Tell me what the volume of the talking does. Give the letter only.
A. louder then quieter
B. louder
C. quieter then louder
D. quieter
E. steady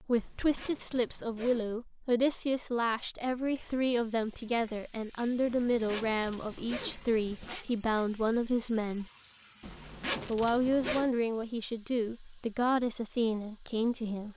E.